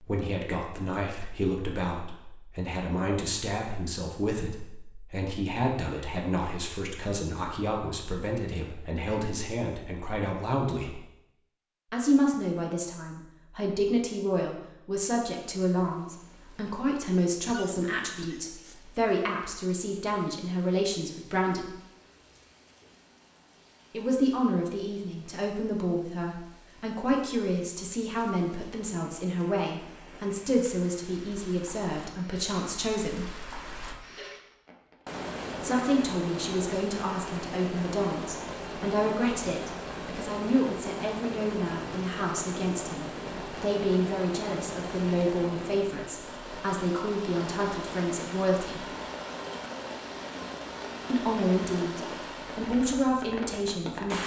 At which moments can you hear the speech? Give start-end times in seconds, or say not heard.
0.0-11.1, 11.9-21.8, 23.9-33.3, 35.6-48.9, 51.1-54.2.